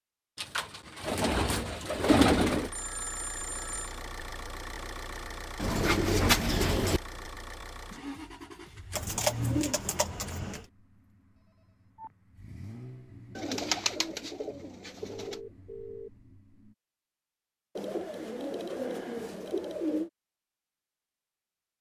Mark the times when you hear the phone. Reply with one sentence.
The phone can be heard from 2.7 to 3.9 s, from 11.6 to 12.2 s and from 15.2 to 16.1 s.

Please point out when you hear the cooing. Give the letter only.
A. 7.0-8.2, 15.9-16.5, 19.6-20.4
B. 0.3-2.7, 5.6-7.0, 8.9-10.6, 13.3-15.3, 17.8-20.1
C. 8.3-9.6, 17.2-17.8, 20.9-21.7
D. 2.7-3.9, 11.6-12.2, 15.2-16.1
B.